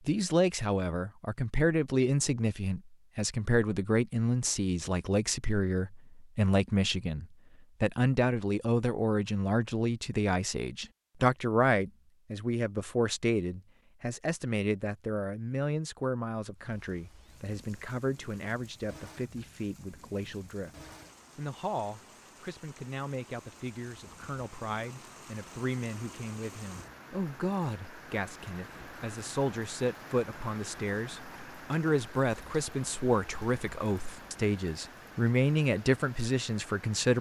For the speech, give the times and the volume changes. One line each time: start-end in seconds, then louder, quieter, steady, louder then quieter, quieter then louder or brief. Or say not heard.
0.1-37.1 quieter then louder.